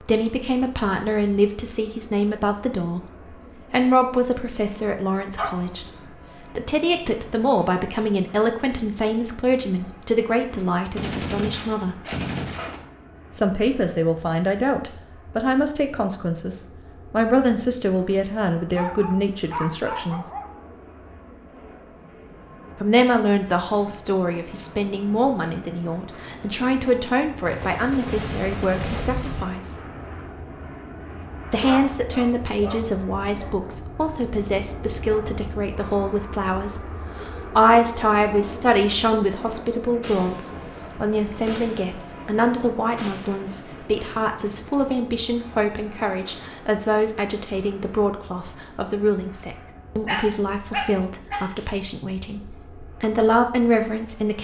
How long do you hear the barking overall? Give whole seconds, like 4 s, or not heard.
6 s.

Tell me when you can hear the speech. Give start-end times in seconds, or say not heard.
0.0-12.0, 13.3-20.2, 22.8-29.8, 31.5-54.3.